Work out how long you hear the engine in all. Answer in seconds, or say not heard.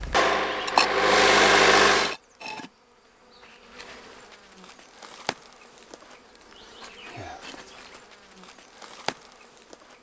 2 s.